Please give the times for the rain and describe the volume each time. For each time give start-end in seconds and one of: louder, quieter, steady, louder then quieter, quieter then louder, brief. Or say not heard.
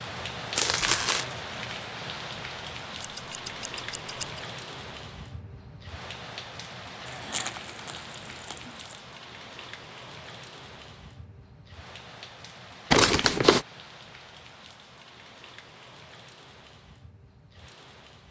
0.0-18.2 quieter.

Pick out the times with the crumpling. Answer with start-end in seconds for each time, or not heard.
0.6-1.2, 7.0-9.0, 12.9-13.7.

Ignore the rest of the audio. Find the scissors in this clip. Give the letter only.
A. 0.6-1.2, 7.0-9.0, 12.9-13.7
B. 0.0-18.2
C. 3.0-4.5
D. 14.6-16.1
C.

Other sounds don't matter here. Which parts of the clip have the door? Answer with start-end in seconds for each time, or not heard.
not heard.